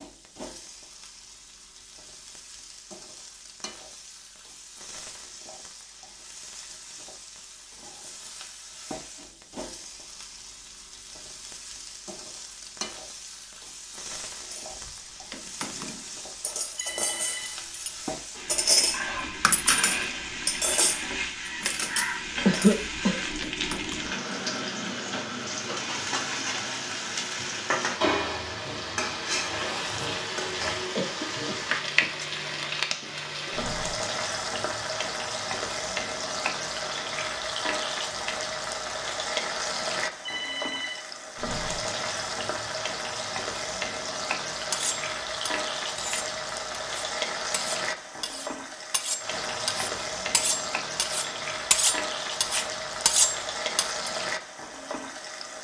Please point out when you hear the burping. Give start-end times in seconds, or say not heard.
not heard.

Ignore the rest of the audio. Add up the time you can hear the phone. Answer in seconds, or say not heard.
2 s.